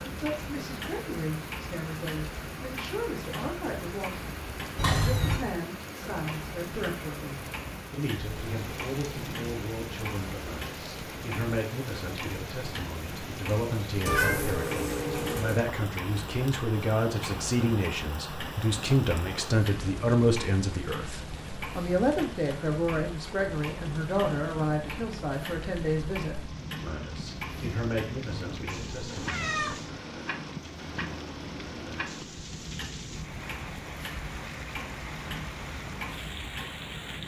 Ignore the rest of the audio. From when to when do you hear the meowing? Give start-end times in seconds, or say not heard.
4.8-5.4, 14.1-15.6, 28.2-29.9.